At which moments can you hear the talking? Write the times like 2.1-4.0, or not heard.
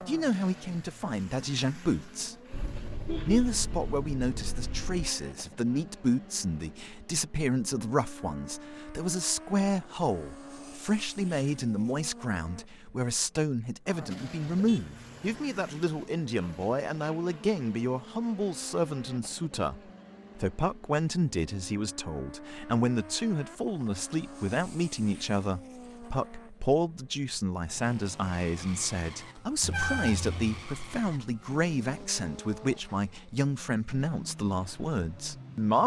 0.1-2.4, 3.2-35.8.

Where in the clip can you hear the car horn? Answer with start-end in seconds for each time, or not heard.
2.5-5.1, 14.4-15.4, 29.6-30.6.